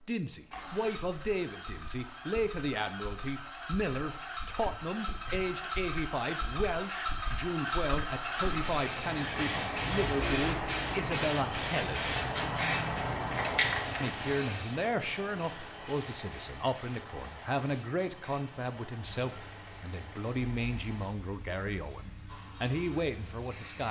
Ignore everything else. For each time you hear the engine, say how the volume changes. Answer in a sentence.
You can hear the engine from 0.0 to 23.8 s, getting louder then quieter.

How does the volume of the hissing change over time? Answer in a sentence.
The volume of the hissing goes down.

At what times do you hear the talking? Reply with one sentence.
The talking can be heard from 0.0 to 12.1 s and from 14.0 to 23.8 s.